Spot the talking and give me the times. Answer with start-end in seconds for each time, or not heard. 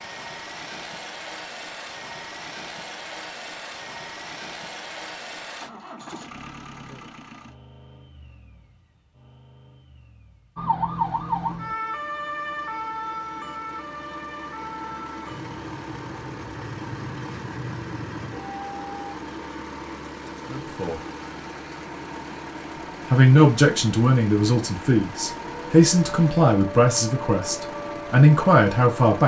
20.5-21.0, 23.1-29.2.